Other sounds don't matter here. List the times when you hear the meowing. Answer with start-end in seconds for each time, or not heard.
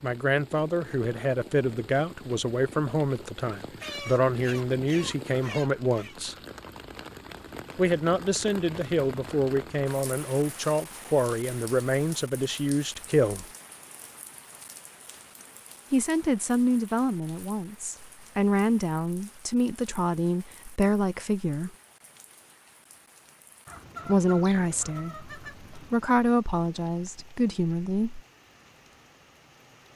not heard.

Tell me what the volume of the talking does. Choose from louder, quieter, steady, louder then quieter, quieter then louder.
steady.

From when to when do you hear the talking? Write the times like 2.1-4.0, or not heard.
0.0-6.3, 7.8-13.4, 15.9-21.7, 24.1-28.2.